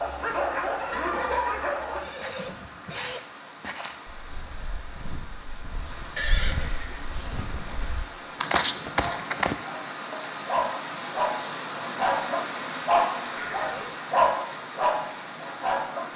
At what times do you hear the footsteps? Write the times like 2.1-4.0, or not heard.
2.1-9.6.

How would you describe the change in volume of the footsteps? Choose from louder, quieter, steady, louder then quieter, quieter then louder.
quieter then louder.